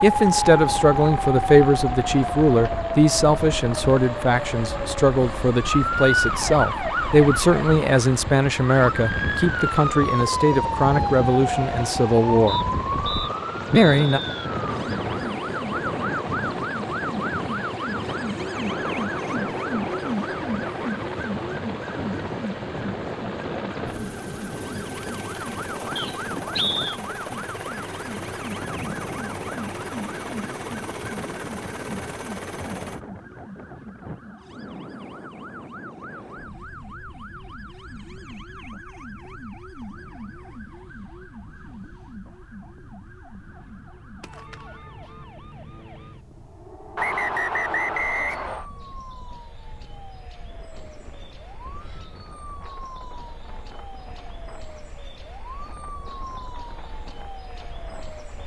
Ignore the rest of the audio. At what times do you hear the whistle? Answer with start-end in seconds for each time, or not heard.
12.4-14.2, 25.9-27.0, 47.0-48.6.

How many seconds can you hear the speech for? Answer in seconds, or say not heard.
13 s.